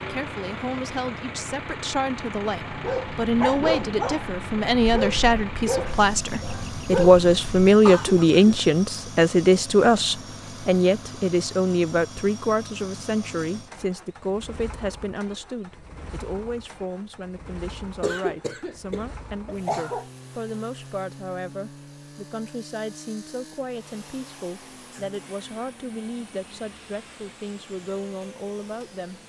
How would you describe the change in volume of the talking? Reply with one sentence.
The loudness of the talking goes up, then down.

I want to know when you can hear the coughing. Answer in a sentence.
The coughing can be heard from 7.8 to 8.6 s and from 18.0 to 20.1 s.